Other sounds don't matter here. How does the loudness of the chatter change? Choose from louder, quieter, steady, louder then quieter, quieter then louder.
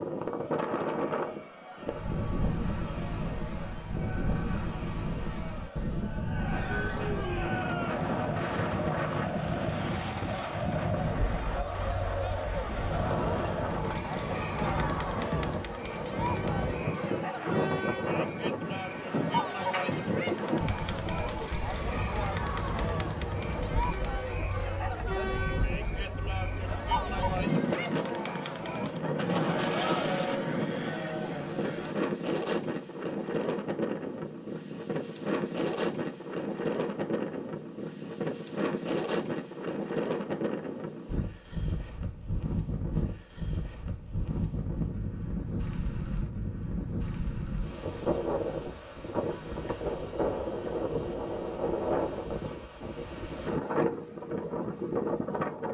louder.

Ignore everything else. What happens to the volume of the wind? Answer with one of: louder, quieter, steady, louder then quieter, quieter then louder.
steady.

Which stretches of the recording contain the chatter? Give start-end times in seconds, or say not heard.
0.2-31.9.